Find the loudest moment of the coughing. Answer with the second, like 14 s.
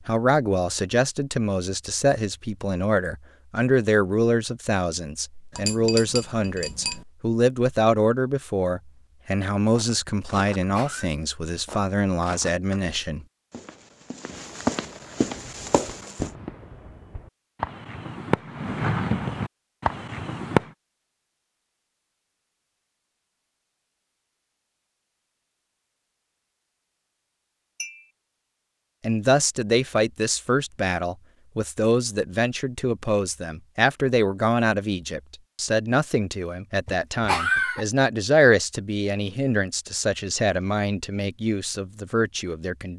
37 s.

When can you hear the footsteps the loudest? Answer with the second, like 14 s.
15 s.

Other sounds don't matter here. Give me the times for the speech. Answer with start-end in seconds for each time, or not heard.
0.1-13.2, 29.0-42.9.